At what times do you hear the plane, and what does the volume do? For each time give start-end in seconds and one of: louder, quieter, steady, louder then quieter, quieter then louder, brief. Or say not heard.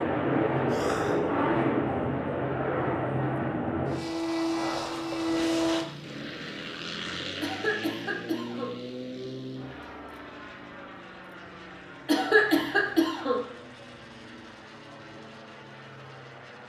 0.0-16.6 quieter.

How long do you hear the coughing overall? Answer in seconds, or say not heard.
3 s.